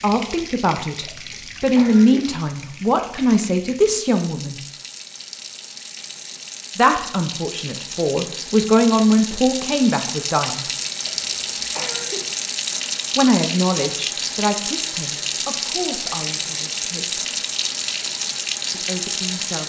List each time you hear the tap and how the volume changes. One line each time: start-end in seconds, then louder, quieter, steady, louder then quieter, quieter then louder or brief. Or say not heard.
0.0-19.6 louder.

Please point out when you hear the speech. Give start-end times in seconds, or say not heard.
0.0-4.6, 6.8-10.7, 13.2-17.2, 18.7-19.6.